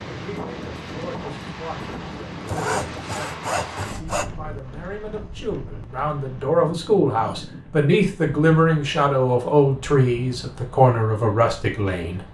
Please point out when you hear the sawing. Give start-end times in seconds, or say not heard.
2.5-4.3.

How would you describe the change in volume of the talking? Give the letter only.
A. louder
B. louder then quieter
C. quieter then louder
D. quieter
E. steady
A.